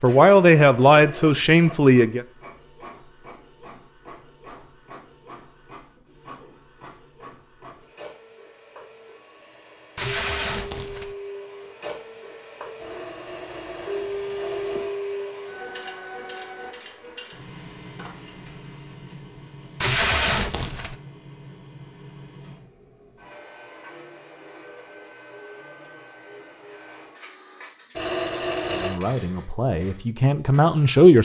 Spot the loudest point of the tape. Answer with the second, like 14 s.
20 s.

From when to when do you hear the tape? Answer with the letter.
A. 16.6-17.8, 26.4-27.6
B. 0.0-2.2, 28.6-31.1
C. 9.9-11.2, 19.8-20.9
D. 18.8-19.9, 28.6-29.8
C.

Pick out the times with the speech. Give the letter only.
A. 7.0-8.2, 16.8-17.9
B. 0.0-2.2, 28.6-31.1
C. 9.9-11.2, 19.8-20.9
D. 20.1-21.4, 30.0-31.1
B.